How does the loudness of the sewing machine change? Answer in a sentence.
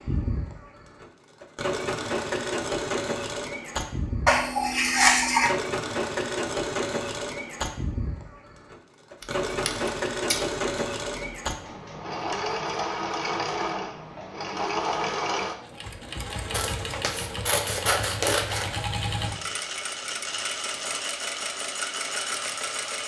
The loudness of the sewing machine stays about the same.